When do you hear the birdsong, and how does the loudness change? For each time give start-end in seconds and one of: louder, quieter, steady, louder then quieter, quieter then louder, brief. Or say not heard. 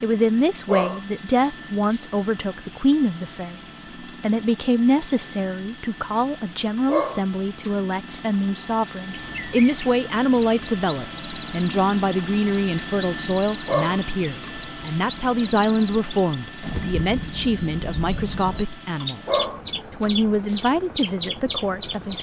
9.1-22.1 louder.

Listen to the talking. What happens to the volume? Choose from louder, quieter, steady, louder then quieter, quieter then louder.
steady.